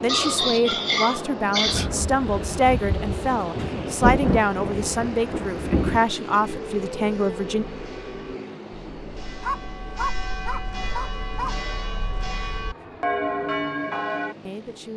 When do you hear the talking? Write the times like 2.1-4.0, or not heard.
0.0-7.7, 14.4-14.9.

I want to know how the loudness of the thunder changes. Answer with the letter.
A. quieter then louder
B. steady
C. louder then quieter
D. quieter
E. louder
C.